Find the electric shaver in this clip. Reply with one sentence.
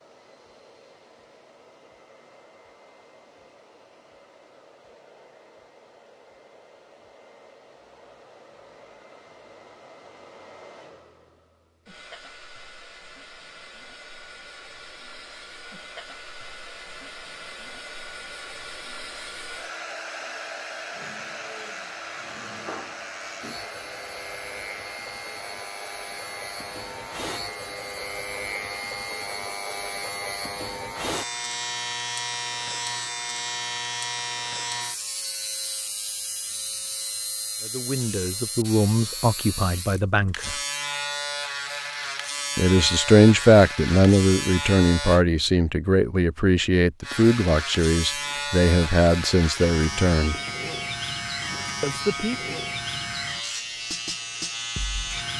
The electric shaver can be heard from 20.9 to 45.2 s and from 47.0 to 55.3 s.